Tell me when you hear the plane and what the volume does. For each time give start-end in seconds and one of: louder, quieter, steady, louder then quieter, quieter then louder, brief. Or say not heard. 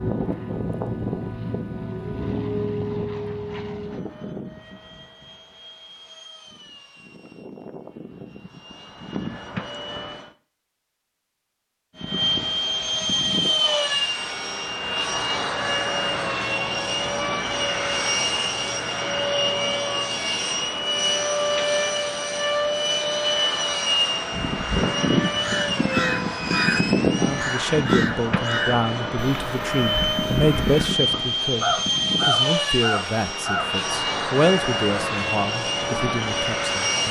0.0-10.3 quieter then louder
11.9-37.0 steady.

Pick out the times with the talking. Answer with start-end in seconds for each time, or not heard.
27.1-37.0.